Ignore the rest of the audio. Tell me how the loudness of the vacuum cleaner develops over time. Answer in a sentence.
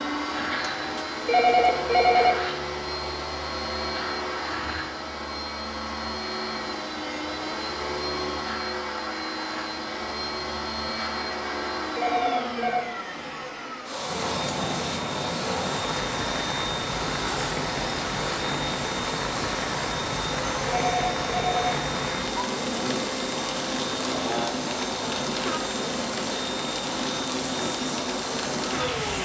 The loudness of the vacuum cleaner stays about the same.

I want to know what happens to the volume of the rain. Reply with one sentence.
The volume of the rain stays about the same.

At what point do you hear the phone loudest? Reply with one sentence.
The loudest moment of the phone is at 2 seconds.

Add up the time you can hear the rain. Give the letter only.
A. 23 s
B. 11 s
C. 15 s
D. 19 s
C.